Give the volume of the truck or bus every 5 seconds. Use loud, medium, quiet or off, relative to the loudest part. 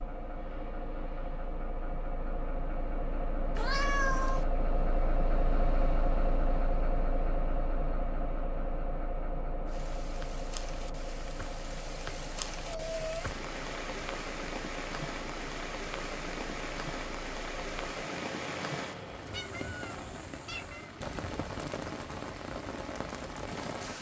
loud, loud, medium, medium, off.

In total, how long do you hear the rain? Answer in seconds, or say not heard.
14 s.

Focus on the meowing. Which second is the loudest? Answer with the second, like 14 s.
4 s.